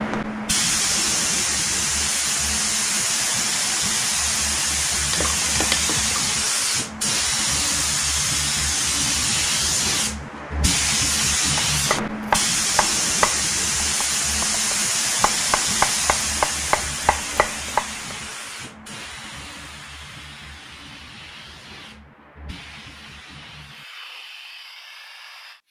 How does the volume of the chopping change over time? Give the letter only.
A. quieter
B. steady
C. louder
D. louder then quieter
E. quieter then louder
E.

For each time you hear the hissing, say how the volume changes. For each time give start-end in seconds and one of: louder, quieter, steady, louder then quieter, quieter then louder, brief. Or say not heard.
0.0-25.6 quieter.